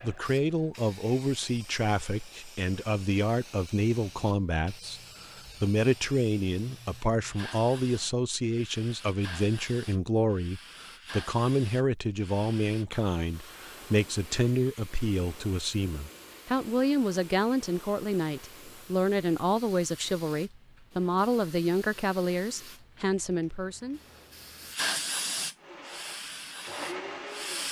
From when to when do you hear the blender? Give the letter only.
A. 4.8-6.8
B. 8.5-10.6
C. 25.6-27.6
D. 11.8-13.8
C.